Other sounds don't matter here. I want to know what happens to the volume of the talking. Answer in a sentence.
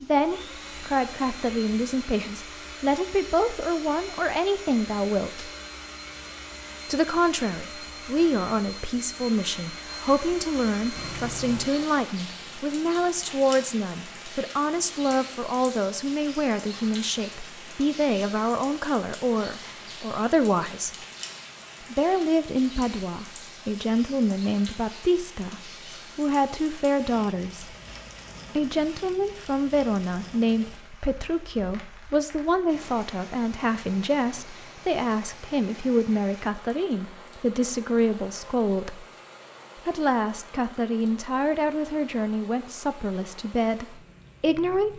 The loudness of the talking stays about the same.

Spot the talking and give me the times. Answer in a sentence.
You can hear the talking from 0.0 to 5.5 s, from 6.8 to 21.1 s, from 21.8 to 27.8 s, from 28.6 to 39.0 s and from 39.9 to 44.9 s.